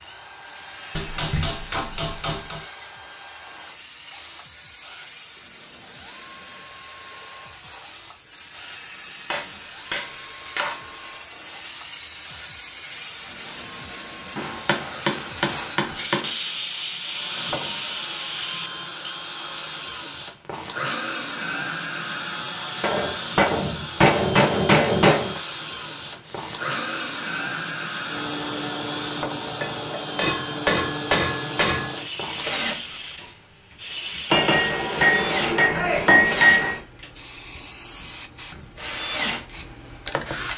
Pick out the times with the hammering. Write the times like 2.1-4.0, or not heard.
0.9-2.6, 9.3-11.1, 14.3-16.3, 22.8-25.4, 29.6-31.9, 34.3-36.8.